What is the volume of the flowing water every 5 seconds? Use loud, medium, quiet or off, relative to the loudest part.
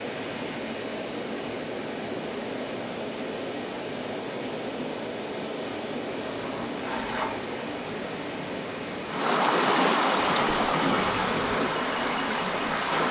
medium, loud, loud.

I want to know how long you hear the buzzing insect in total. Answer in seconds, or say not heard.
3 s.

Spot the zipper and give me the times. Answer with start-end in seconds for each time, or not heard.
6.2-7.4.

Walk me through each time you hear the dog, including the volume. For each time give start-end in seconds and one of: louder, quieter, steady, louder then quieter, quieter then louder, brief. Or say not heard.
not heard.